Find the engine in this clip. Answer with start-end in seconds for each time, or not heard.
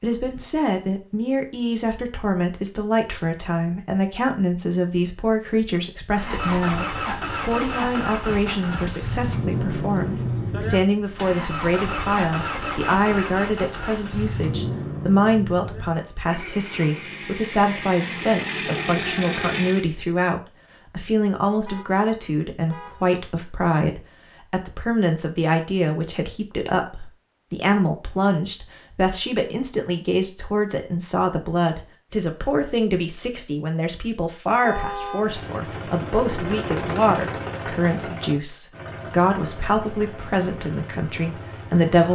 6.1-19.9, 35.1-42.1.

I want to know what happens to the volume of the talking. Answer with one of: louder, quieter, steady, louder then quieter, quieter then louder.
steady.